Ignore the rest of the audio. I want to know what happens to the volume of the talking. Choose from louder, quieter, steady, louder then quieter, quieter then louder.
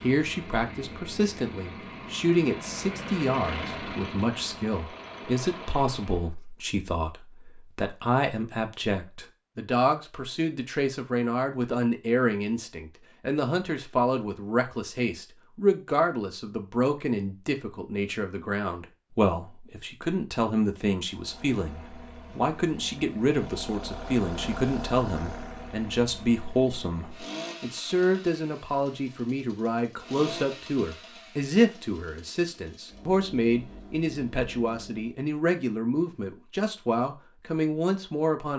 steady.